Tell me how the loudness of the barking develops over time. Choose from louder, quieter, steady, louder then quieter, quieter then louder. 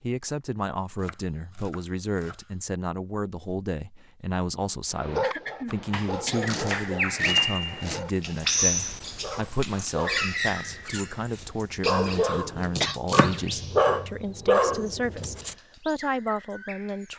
quieter then louder.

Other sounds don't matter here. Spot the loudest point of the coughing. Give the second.
13 s.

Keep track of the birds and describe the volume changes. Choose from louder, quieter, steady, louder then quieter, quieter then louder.
quieter.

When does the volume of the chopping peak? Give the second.
13 s.